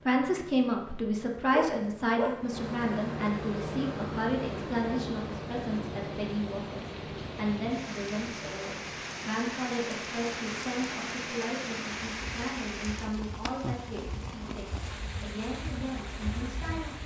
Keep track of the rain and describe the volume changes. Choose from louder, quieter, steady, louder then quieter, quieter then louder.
louder then quieter.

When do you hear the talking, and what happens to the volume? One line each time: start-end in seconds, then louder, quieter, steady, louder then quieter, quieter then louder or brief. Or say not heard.
0.1-17.0 quieter.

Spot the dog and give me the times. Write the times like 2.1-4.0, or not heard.
1.5-2.5.